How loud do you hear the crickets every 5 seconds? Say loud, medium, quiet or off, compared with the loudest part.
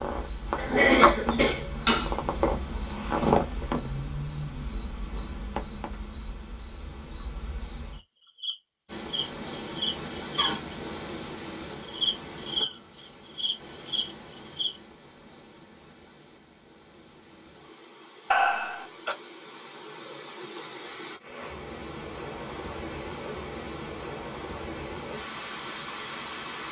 loud, loud, loud, off, off, off.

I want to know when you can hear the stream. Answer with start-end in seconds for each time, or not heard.
8.8-26.6.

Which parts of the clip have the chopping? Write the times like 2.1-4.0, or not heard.
not heard.